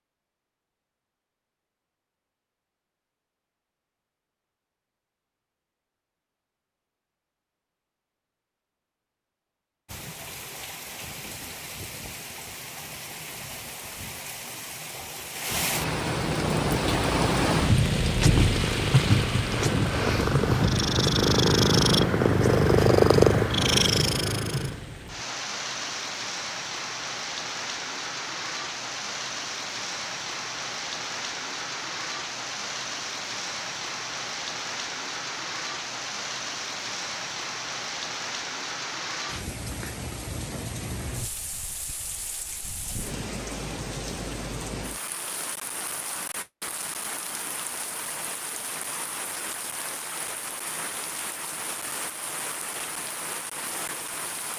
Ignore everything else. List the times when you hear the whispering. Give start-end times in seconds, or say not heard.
not heard.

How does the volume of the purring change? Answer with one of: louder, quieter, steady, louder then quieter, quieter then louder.
louder.